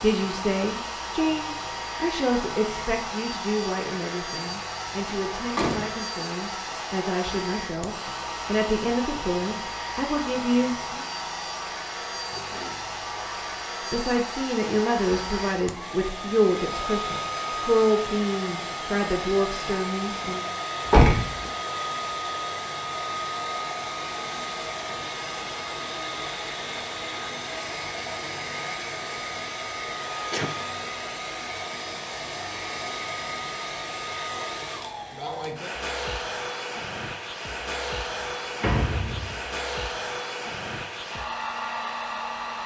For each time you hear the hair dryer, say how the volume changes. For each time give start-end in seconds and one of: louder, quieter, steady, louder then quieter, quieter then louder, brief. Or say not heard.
0.0-42.6 steady.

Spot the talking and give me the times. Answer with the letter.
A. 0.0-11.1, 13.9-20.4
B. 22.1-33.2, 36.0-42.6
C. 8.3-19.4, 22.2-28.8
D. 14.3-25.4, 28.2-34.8
A.